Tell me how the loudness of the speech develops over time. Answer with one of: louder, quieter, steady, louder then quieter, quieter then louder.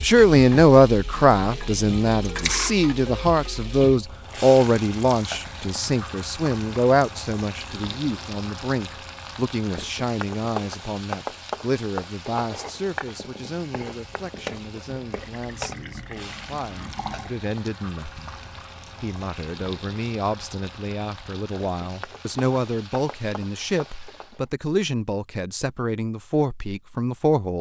quieter then louder.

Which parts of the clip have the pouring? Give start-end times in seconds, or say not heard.
2.2-2.7, 15.1-17.4.